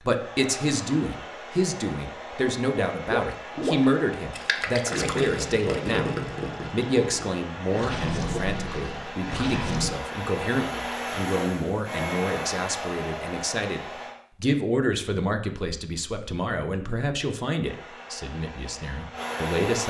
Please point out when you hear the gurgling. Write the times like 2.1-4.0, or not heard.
3.0-9.9.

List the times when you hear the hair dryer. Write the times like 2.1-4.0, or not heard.
0.0-14.2, 17.6-19.8.